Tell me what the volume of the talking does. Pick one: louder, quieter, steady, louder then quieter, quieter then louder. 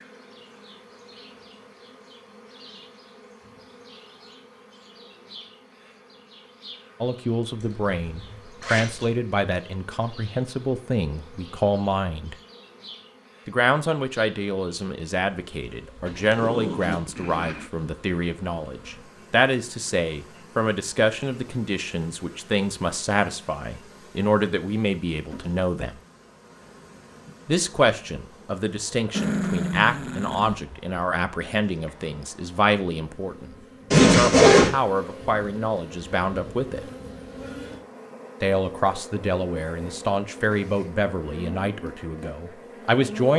steady.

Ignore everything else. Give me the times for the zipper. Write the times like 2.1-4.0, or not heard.
7.5-9.2, 33.9-34.7.